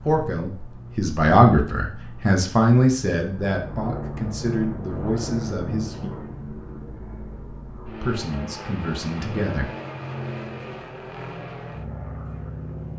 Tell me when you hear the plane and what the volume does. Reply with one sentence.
The plane can be heard from 0.0 to 12.9 s, getting louder.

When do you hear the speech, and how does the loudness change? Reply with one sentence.
You can hear the speech from 0.0 to 6.1 s, getting quieter; and briefly from 8.0 to 9.8 s.